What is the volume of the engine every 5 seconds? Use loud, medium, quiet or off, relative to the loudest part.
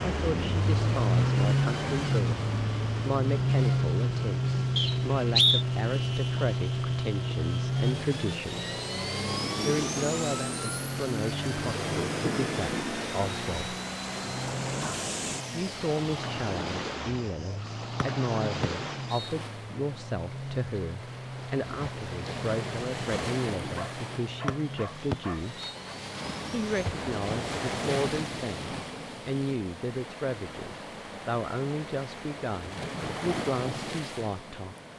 loud, loud, medium, quiet, quiet, quiet, off.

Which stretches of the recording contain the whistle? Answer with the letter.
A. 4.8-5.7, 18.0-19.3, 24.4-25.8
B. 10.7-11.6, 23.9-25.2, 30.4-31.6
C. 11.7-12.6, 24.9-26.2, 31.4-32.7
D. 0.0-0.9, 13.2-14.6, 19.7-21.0
A.